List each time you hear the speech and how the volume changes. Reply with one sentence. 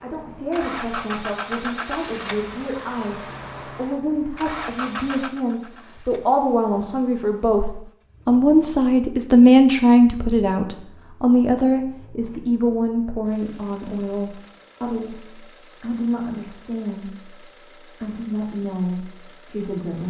You can hear the speech from 0.0 to 20.0 s, getting louder then quieter.